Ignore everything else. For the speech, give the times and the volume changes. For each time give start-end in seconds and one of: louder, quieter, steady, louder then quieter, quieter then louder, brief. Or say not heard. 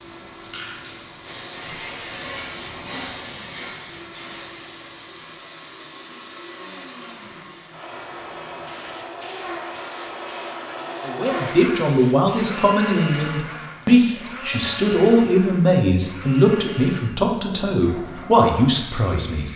11.1-19.5 steady.